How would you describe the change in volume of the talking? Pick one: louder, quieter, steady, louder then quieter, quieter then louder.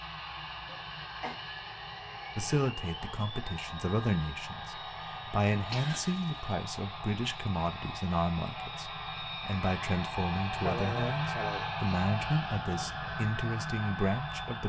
steady.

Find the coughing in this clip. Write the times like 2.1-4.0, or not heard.
0.7-1.4, 5.7-6.4, 10.6-11.8.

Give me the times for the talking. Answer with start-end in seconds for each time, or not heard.
2.4-14.6.